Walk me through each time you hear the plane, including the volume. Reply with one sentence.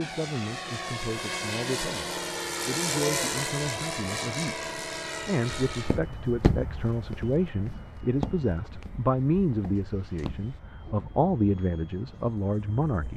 The plane can be heard from 0.0 to 13.1 s, getting quieter.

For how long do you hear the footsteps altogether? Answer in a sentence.
You can hear the footsteps for 5 seconds altogether.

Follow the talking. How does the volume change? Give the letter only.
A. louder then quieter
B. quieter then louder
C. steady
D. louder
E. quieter
D.